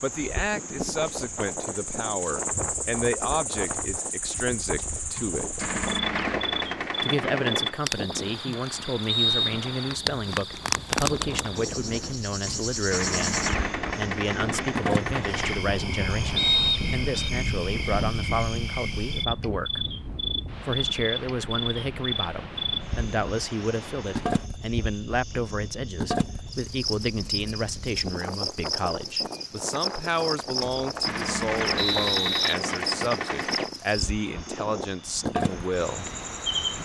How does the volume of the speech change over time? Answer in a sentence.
The loudness of the speech stays about the same.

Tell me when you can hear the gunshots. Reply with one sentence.
The gunshots can be heard from 5.2 to 7.8 s, from 12.4 to 15.6 s and from 30.6 to 33.7 s.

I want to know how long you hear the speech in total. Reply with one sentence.
The speech can be heard for 34 seconds in total.